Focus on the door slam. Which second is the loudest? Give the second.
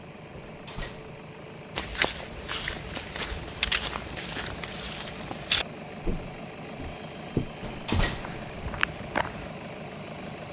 8 s.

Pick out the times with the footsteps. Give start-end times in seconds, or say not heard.
1.8-9.5.